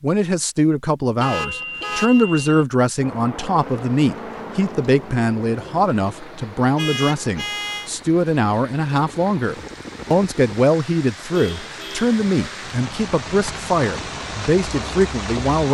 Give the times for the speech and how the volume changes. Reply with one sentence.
You can hear the speech from 0.0 to 15.6 s, at a steady volume.